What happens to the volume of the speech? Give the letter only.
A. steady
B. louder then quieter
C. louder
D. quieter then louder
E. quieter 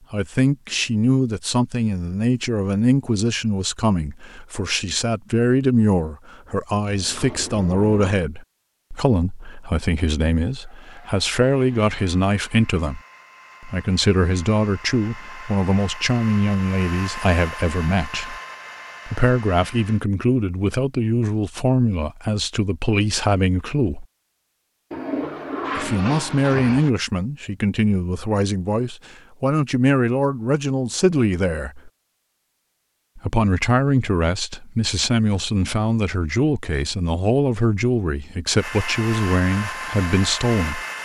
A.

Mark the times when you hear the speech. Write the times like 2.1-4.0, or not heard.
0.1-13.0, 13.6-18.4, 19.1-24.1, 25.8-31.9, 33.1-40.8.